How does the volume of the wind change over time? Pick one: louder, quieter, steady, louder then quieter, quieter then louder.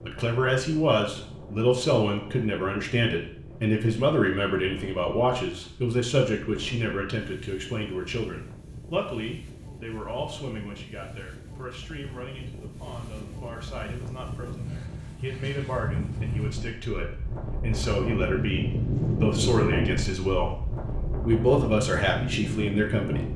louder.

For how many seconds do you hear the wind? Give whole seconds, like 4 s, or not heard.
23 s.